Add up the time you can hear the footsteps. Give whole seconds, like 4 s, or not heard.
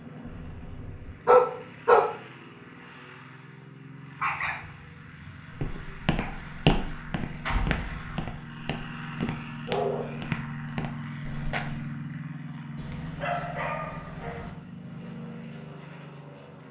6 s.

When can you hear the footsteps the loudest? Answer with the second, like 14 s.
7 s.